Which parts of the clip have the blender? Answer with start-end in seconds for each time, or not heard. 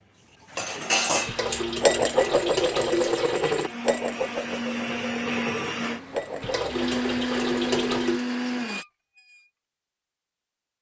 0.0-8.8.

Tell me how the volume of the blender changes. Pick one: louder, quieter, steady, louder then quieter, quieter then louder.
louder.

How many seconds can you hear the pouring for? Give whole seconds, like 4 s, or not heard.
4 s.